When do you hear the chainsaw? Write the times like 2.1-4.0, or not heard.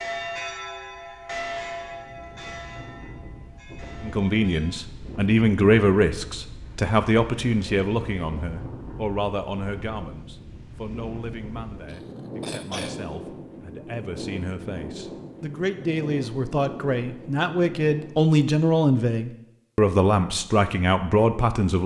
not heard.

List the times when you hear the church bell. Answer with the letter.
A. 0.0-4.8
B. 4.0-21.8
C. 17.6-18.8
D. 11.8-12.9
A.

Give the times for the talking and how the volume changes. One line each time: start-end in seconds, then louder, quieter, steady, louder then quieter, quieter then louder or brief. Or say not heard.
4.0-21.8 quieter then louder.